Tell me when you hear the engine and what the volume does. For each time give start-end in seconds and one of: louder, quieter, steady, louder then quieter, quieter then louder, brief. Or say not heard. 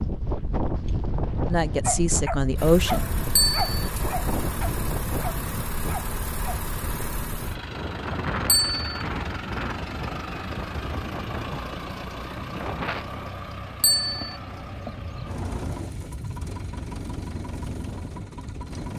2.5-18.9 steady.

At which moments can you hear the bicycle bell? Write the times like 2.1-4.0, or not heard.
3.4-3.9, 8.4-9.0, 13.8-14.3.